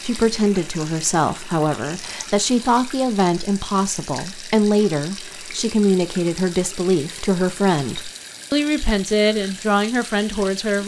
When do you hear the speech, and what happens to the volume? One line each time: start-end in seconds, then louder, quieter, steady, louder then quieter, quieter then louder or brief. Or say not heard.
0.0-10.8 steady.